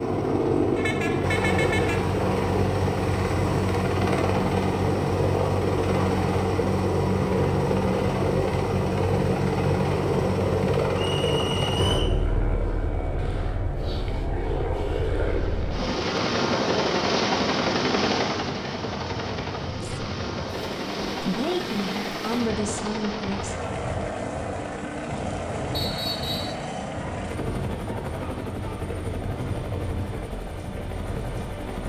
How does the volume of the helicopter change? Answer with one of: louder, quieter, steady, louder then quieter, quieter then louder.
quieter.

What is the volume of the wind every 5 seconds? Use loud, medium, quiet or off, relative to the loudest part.
off, off, loud, loud, loud, loud, loud.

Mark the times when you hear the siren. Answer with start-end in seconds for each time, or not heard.
not heard.